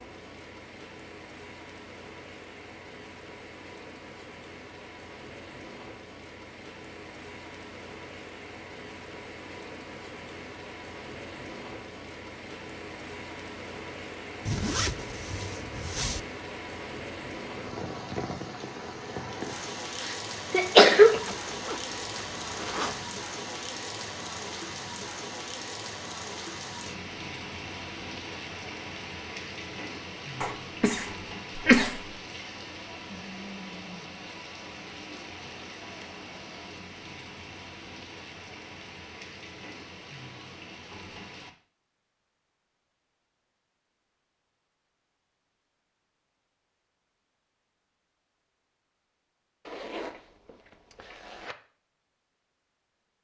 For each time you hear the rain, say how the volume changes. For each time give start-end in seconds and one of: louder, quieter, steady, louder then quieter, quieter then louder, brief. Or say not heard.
0.0-41.5 louder then quieter.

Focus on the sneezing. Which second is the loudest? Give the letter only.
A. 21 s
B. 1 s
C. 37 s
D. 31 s
A.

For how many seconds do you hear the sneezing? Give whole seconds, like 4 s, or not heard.
3 s.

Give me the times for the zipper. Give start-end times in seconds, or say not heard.
14.4-16.2, 21.1-23.1, 49.6-51.5.